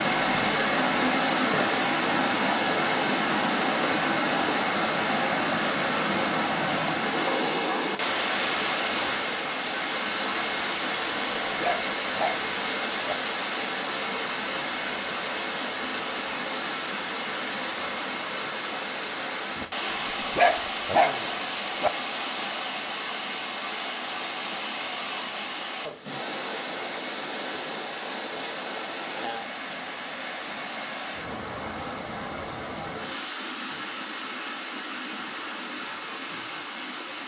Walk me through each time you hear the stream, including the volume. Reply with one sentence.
You can hear the stream from 0.0 to 37.2 s, getting quieter.